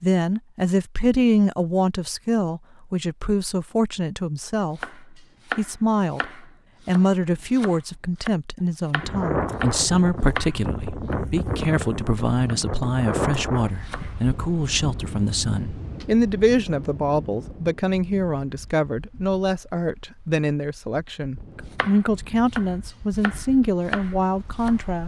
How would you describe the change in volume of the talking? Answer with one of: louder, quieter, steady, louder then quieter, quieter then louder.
steady.